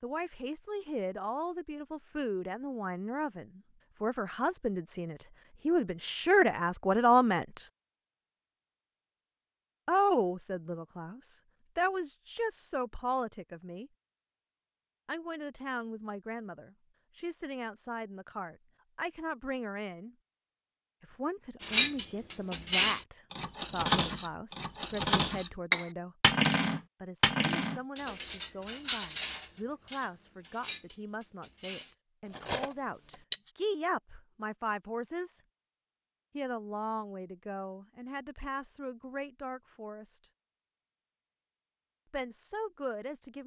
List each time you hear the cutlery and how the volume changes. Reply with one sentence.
The cutlery can be heard from 21.6 to 33.4 s, getting quieter.